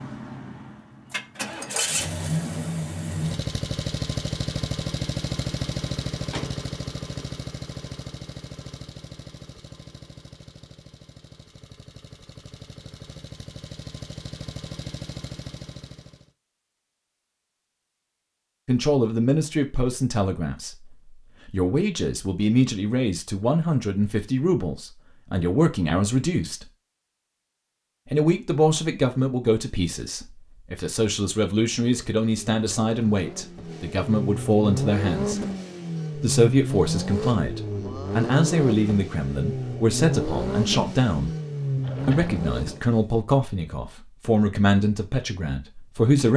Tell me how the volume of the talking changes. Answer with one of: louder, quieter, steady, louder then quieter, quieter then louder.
steady.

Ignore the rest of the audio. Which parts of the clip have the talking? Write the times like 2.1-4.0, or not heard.
18.6-26.6, 28.1-35.4, 36.1-41.3, 42.0-46.3.